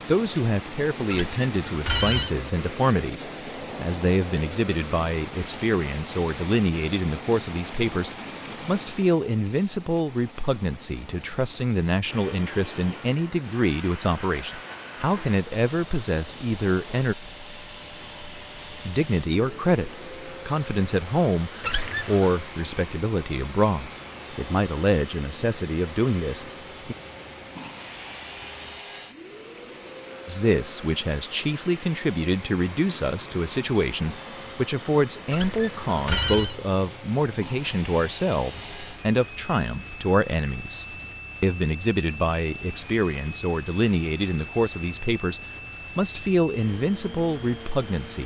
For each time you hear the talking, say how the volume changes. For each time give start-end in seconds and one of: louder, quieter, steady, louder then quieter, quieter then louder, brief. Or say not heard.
0.1-17.1 steady
18.9-26.9 steady
30.2-48.2 steady.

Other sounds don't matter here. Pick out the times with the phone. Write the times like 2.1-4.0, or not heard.
1.1-2.3, 21.6-22.4, 35.3-36.5.